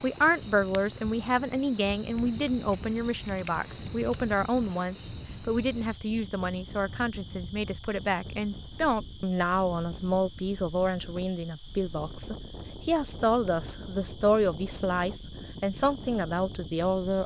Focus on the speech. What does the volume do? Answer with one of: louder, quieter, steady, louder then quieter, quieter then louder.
steady.